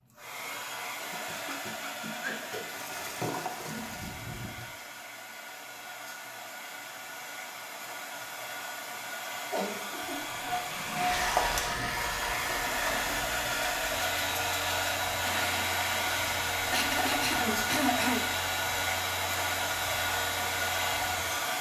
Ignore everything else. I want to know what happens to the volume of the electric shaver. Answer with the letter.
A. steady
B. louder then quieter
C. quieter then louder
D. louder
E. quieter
A.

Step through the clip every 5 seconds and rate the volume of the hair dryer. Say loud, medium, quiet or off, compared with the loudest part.
medium, medium, loud, loud, loud.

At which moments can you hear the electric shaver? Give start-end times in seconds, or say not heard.
11.1-21.5.